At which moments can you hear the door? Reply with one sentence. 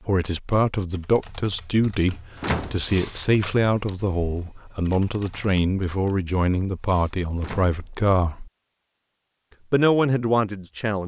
You can hear the door from 2.4 to 2.9 s and from 7.4 to 7.8 s.